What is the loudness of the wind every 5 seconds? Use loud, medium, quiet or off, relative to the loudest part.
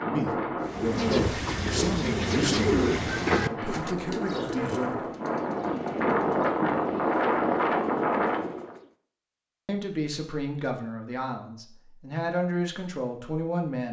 medium, loud, off.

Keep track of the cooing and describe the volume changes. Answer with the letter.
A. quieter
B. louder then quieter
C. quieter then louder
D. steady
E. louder
A.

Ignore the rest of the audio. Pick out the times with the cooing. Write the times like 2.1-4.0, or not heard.
0.6-8.9.